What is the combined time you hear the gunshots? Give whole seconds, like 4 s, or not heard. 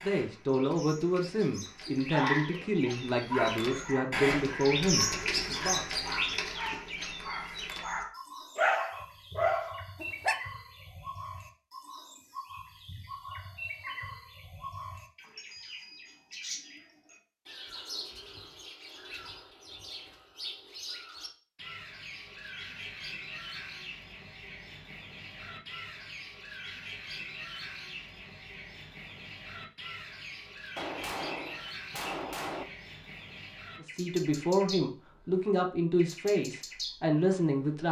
2 s.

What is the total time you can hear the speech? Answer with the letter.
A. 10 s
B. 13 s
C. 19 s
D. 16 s
A.